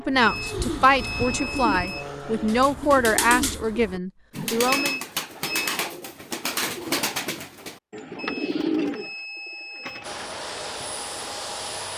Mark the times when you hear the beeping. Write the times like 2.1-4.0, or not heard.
0.2-2.1, 4.7-5.8, 8.2-10.1.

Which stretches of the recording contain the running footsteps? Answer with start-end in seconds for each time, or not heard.
not heard.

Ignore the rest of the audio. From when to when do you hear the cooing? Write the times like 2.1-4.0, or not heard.
0.1-10.9.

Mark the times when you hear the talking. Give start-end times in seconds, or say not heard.
0.0-5.0.